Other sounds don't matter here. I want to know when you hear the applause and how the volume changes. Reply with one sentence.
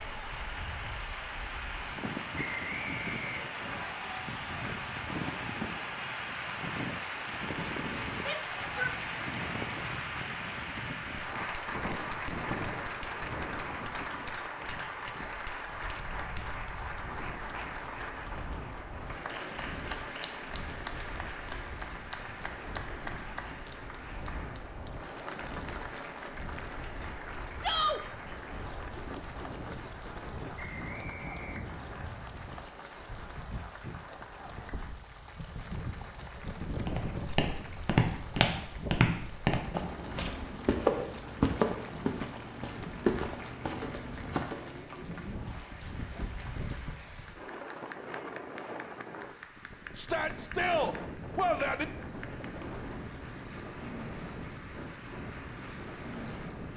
The applause can be heard from 0.0 to 56.7 s, getting quieter.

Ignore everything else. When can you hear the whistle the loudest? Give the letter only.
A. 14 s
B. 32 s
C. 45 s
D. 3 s
D.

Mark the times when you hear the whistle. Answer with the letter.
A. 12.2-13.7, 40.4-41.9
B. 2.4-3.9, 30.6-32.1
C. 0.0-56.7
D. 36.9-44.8
B.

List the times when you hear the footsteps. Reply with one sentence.
You can hear the footsteps from 36.9 to 44.8 s.